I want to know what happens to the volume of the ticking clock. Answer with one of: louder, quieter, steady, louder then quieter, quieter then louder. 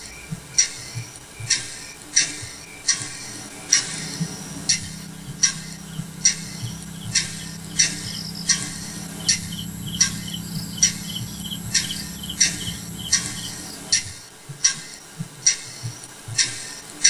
steady.